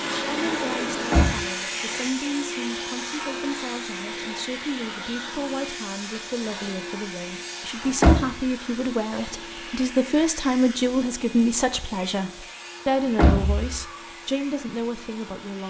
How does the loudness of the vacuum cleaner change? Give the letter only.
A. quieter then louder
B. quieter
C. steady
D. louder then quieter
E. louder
B.